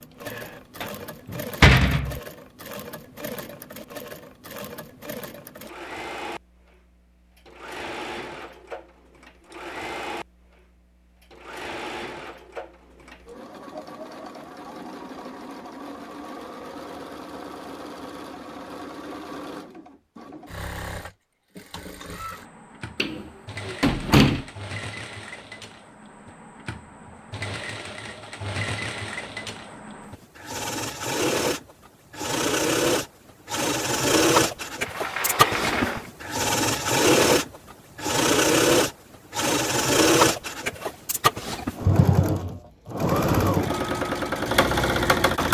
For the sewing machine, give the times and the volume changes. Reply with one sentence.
The sewing machine can be heard from 0.0 to 45.4 s, getting louder.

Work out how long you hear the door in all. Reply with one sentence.
The door can be heard for 5 seconds in total.